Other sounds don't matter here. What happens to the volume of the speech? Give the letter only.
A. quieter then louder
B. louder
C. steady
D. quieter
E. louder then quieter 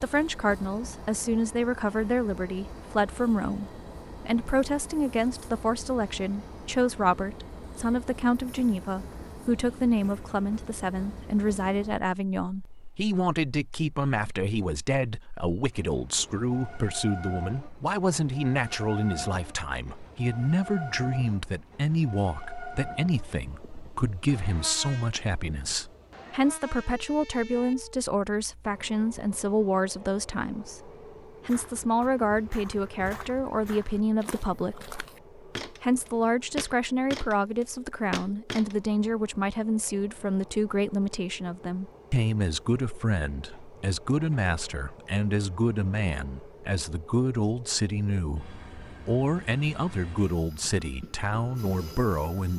C.